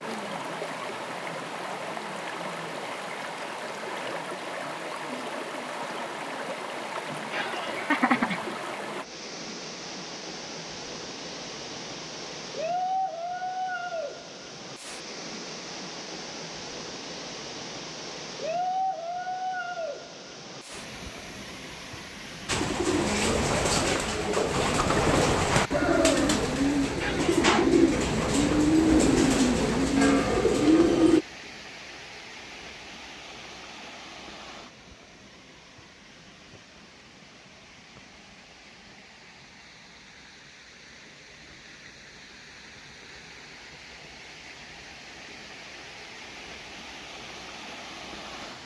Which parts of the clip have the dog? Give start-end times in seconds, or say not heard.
not heard.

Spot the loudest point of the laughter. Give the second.
8 s.